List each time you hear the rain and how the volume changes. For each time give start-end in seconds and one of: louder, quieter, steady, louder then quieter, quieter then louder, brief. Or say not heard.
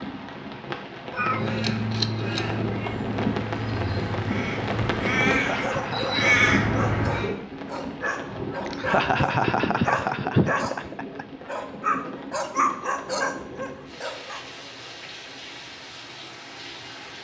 0.0-17.1 quieter.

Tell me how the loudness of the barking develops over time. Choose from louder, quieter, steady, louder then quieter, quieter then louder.
louder.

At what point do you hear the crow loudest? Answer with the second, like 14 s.
6 s.